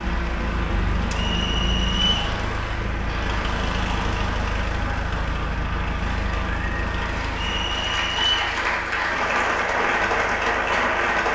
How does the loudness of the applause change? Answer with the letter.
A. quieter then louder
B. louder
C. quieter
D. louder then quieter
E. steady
B.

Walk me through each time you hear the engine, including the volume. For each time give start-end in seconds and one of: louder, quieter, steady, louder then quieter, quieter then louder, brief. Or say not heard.
0.0-11.2 quieter.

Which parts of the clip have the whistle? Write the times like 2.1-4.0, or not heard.
1.1-2.2, 7.3-8.5.